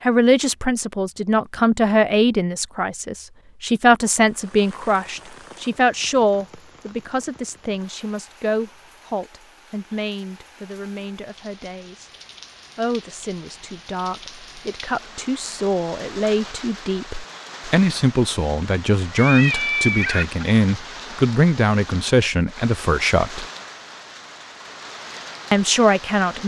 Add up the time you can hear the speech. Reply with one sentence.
The speech can be heard for 24 seconds in total.